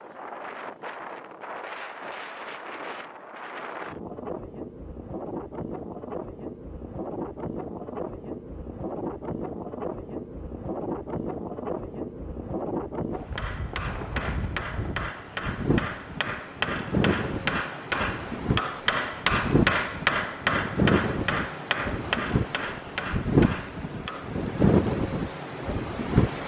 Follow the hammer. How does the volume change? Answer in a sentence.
The volume of the hammer goes up, then down.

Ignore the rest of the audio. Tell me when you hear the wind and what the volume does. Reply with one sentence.
You can hear the wind from 0.0 to 26.4 s, getting louder.